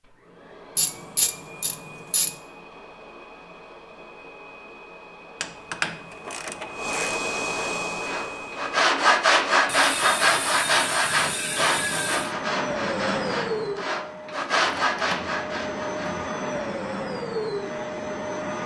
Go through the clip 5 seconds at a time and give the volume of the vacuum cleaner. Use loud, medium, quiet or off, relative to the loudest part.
quiet, loud, loud, loud.